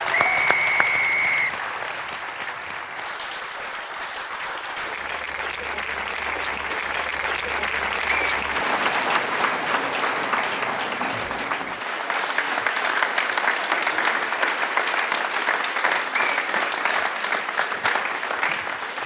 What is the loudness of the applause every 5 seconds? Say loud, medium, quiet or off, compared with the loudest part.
medium, loud, loud, loud.